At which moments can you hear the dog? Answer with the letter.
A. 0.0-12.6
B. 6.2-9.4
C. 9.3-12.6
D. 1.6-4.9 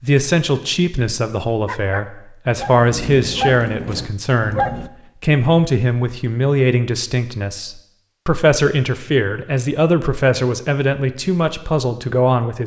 D.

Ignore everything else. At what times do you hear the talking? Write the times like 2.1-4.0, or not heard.
0.0-12.6.